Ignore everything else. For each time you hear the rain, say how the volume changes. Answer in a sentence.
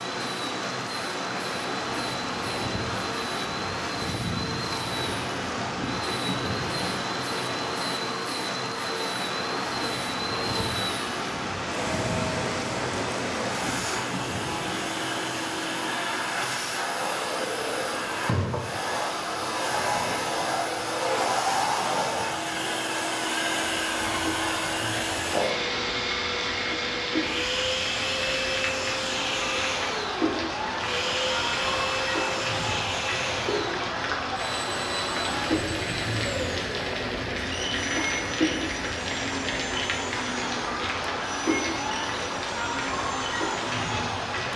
The rain can be heard from 0.0 to 44.5 s, getting quieter then louder.